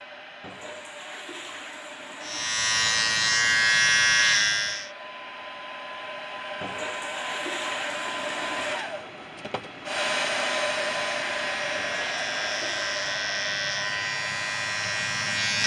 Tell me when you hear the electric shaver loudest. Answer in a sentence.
The loudest moment of the electric shaver is at 4 seconds.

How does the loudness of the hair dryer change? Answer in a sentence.
The volume of the hair dryer goes up, then down.